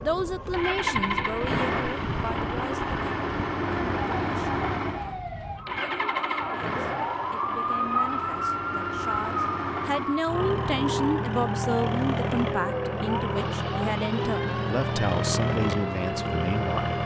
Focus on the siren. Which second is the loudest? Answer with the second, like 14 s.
8 s.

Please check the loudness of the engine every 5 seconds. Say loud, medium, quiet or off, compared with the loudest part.
loud, medium, loud, loud.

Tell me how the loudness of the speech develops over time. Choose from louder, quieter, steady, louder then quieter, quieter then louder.
quieter then louder.